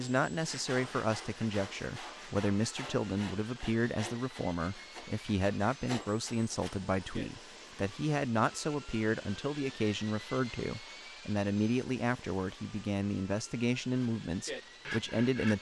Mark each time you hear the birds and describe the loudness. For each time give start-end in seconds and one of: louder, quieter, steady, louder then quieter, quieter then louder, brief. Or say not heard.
not heard.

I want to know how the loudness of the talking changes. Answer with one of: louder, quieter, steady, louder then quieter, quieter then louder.
steady.